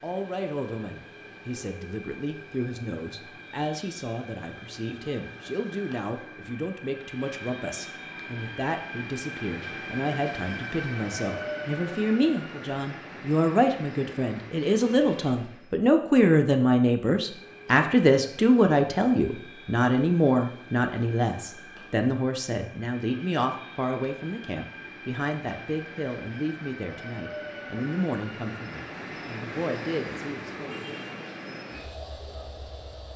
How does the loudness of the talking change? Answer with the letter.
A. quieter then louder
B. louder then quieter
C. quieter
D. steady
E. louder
B.